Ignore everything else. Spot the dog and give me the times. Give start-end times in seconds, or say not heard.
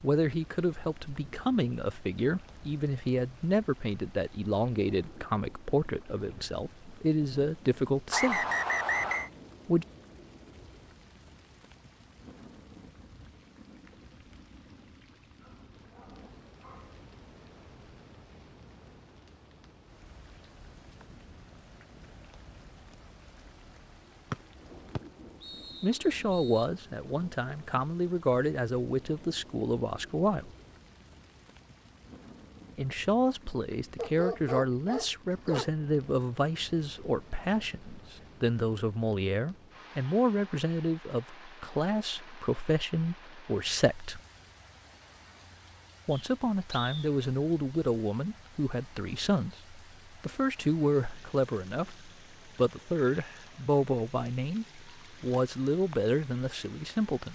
15.4-17.0, 34.0-35.7.